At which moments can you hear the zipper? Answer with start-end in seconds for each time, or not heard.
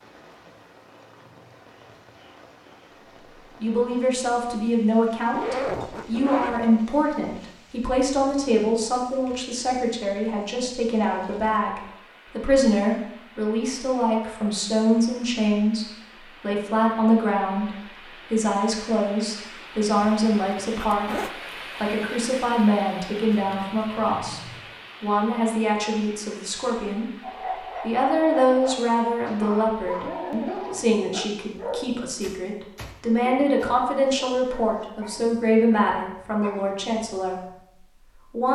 5.3-6.6, 20.0-21.3.